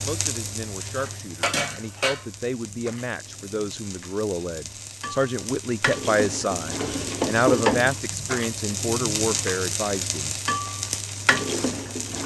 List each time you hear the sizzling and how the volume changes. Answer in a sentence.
The sizzling can be heard from 0.0 to 12.2 s, getting quieter then louder.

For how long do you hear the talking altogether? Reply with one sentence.
You can hear the talking for 10 seconds altogether.